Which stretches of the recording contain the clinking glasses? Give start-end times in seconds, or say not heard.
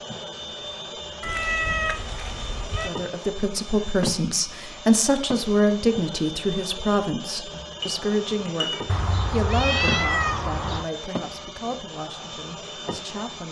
7.8-8.8.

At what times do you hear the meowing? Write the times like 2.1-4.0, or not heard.
1.2-2.9, 8.8-10.9.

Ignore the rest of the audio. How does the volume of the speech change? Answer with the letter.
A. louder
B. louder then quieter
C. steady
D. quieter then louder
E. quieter
E.